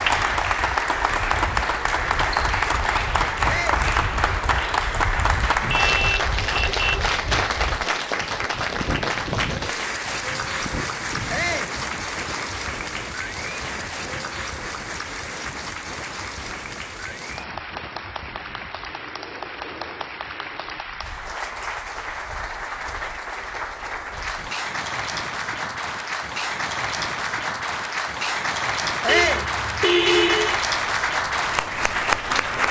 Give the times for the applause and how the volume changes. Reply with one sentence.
The applause can be heard from 0.0 to 32.6 s, getting quieter then louder.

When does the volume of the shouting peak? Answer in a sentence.
The volume of the shouting peaks at 29 seconds.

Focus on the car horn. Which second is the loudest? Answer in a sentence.
The loudest moment of the car horn is at 30 seconds.